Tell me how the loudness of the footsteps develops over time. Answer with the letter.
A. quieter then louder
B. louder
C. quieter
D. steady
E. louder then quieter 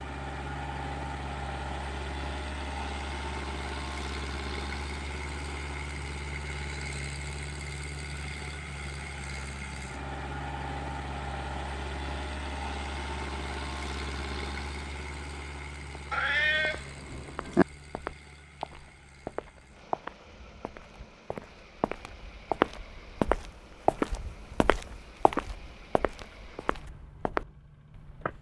E.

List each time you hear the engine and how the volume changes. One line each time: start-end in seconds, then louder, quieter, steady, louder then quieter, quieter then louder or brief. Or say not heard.
0.0-28.3 quieter.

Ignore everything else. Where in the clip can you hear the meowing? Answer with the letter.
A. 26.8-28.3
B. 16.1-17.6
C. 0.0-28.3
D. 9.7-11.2
B.